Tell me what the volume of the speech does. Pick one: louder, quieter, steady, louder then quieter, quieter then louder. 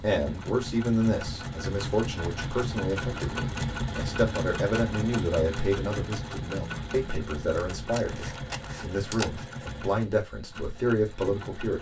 steady.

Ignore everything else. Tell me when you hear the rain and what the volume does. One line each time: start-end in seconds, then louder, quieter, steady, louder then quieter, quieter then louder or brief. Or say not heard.
not heard.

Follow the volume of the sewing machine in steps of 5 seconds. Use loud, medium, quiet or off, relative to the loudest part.
loud, loud, medium.